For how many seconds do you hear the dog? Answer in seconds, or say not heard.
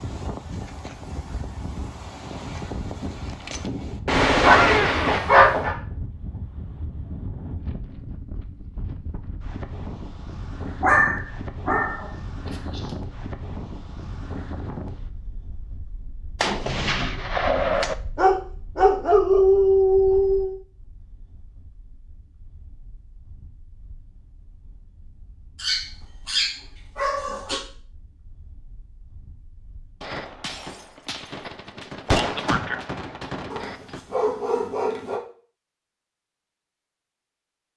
9 s.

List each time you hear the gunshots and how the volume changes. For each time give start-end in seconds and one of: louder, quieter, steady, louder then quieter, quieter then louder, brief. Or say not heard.
3.5-5.2 brief
16.4-17.9 brief
30.0-34.0 louder then quieter.